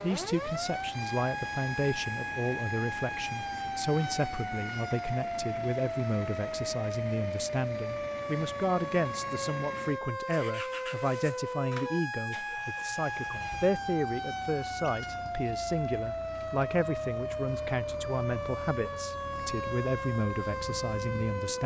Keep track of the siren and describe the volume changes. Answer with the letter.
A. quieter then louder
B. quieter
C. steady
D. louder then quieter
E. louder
C.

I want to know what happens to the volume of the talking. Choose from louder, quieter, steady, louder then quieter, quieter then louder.
steady.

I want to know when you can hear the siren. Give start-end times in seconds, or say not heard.
0.0-21.6.